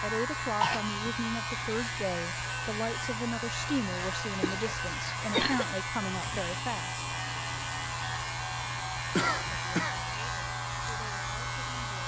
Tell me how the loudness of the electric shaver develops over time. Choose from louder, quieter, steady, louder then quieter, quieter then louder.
steady.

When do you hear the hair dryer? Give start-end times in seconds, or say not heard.
0.1-12.0.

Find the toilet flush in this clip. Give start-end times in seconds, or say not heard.
not heard.